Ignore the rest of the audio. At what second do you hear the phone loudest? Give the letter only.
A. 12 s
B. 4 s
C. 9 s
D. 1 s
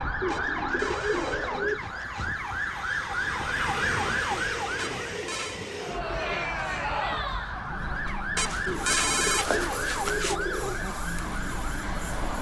C.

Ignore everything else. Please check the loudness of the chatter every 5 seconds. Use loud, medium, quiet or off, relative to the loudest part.
off, loud, medium.